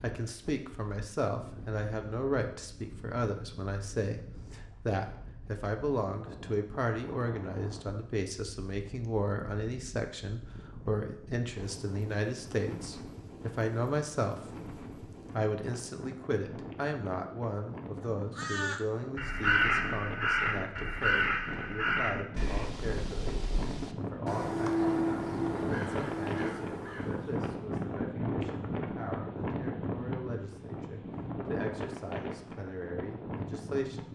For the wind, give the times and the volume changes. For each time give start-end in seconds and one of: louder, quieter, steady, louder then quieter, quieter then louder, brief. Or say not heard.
0.0-34.0 louder.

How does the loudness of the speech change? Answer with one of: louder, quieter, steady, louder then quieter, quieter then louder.
quieter.